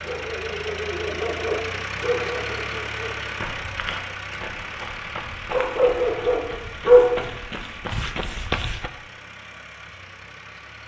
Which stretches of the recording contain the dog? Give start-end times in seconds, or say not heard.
0.0-3.3, 5.5-7.2.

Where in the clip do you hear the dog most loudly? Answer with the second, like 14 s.
7 s.